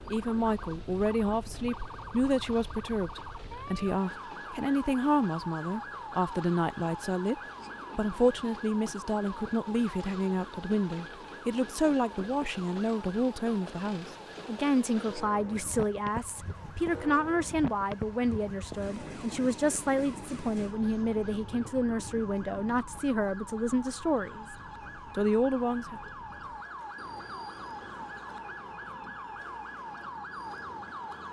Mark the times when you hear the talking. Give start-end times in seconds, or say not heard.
0.1-7.3, 8.0-24.4, 25.1-26.0.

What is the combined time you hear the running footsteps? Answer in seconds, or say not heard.
not heard.